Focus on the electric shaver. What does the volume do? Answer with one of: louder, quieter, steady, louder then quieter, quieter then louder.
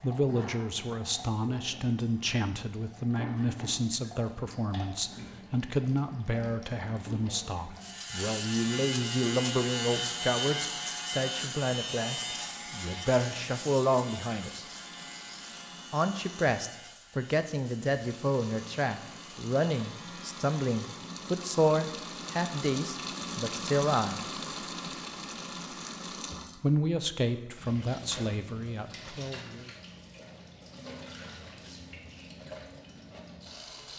quieter.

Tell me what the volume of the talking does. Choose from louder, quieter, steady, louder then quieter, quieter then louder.
steady.